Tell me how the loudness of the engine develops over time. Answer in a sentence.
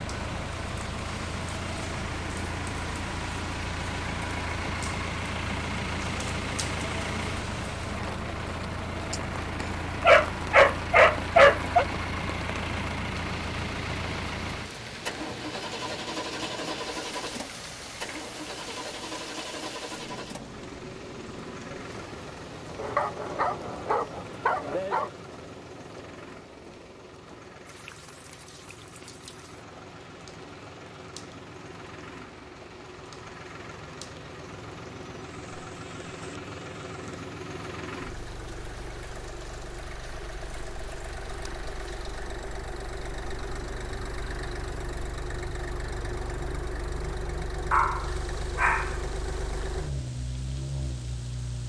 The volume of the engine goes down, then up.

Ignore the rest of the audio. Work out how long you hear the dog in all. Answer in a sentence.
The dog can be heard for 6 seconds in total.